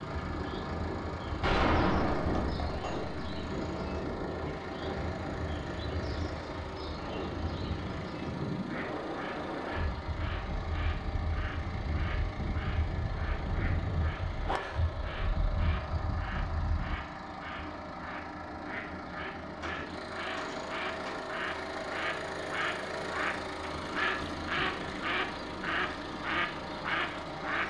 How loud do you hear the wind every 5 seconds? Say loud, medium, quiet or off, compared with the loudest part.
loud, loud, loud, loud, off, off.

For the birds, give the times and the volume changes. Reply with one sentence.
The birds can be heard from 0.0 to 27.6 s, getting louder.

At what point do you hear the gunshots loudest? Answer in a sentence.
The volume of the gunshots peaks at 2 seconds.